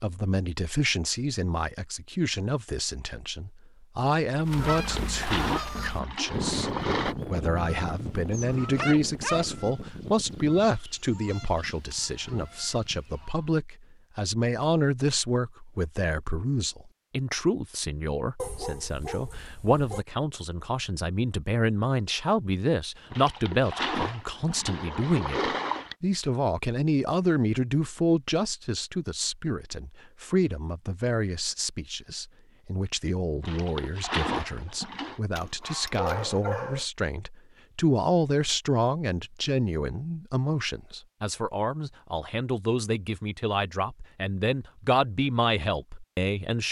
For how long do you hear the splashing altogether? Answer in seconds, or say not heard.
7 s.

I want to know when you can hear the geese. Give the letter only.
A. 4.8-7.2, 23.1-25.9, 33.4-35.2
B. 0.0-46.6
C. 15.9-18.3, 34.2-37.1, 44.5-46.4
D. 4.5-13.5
D.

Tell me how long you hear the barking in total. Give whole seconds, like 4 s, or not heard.
4 s.